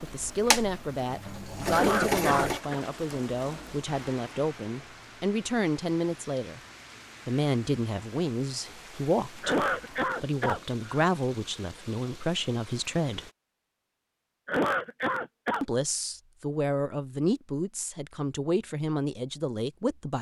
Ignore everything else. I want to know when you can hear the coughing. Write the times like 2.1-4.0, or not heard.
1.7-2.9, 9.4-11.1, 14.4-15.7.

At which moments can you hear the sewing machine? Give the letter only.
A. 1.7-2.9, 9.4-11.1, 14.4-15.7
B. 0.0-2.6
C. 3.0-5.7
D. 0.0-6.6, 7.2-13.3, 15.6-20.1
B.